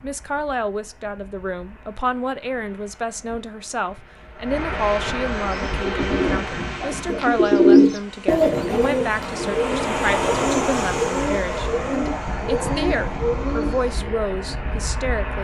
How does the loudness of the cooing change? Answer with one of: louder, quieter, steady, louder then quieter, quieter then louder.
louder then quieter.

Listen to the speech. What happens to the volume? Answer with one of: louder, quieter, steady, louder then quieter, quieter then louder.
steady.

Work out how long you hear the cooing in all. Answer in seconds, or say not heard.
9 s.